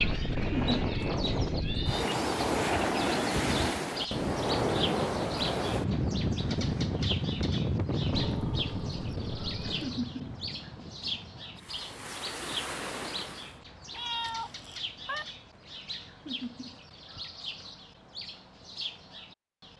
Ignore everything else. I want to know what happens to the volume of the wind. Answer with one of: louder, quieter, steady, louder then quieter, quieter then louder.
quieter.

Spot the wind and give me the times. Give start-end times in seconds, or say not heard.
0.0-13.6.